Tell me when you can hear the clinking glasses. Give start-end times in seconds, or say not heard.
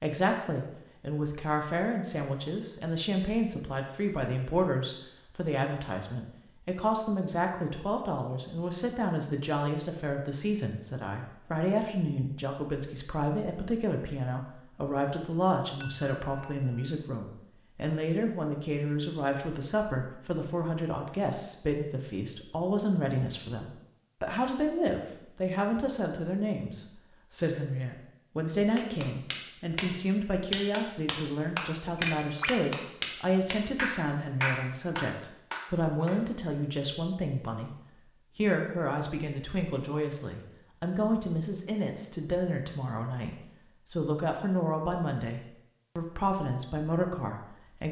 15.8-16.4, 31.9-32.7.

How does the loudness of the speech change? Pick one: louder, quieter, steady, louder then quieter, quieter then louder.
steady.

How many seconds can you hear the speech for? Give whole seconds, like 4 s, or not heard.
48 s.